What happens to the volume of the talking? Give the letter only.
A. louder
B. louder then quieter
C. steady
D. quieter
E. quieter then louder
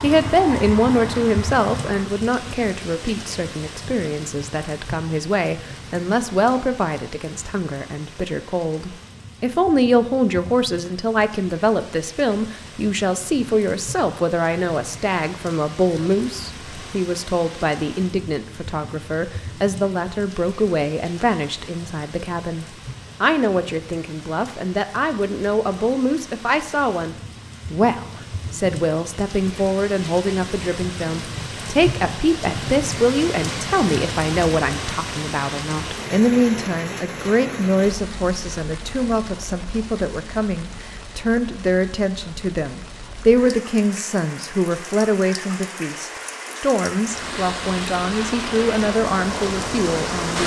C.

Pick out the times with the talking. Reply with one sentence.
The talking can be heard from 0.0 to 50.4 s.